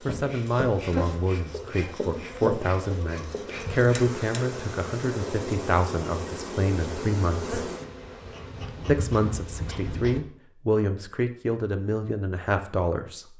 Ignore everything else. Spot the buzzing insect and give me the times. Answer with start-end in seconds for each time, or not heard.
0.0-10.2.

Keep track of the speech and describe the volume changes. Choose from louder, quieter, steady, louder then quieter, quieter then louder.
steady.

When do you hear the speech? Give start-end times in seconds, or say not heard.
0.1-7.5, 8.8-13.3.